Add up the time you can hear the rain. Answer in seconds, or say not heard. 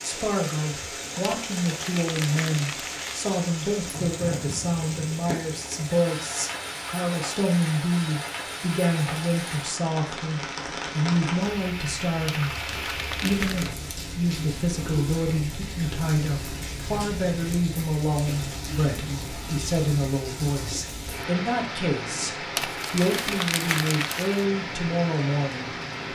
26 s.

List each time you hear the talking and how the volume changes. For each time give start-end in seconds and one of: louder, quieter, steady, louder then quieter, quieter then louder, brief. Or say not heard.
0.0-25.8 steady.